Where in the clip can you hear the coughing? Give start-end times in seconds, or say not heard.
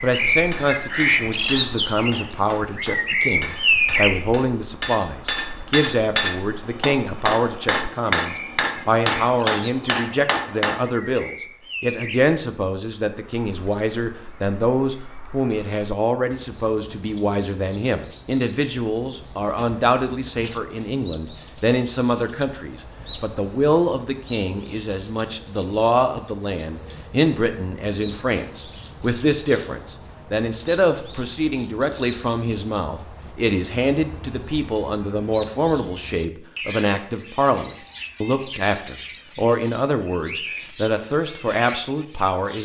not heard.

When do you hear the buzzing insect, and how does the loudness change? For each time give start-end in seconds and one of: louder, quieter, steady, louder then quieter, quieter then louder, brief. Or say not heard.
not heard.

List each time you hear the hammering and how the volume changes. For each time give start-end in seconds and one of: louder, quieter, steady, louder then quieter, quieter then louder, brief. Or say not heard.
0.3-10.9 louder.